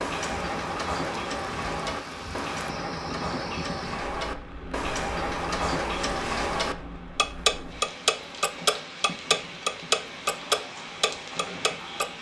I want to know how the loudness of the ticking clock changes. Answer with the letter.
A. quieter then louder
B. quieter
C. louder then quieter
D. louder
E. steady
D.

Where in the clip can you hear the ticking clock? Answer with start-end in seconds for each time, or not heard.
0.0-12.1.